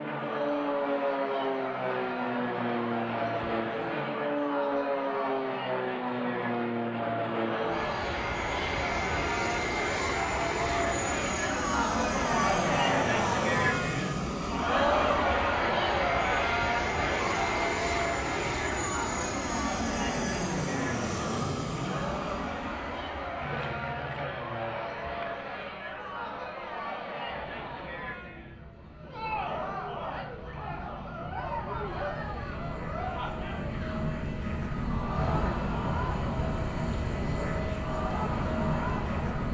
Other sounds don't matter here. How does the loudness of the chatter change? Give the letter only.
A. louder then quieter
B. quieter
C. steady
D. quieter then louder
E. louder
A.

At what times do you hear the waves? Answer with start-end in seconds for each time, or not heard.
not heard.